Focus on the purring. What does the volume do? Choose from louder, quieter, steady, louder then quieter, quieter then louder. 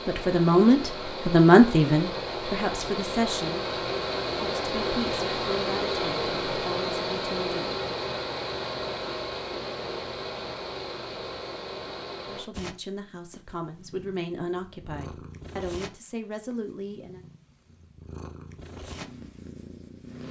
louder.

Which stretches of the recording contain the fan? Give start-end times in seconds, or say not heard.
0.0-12.5.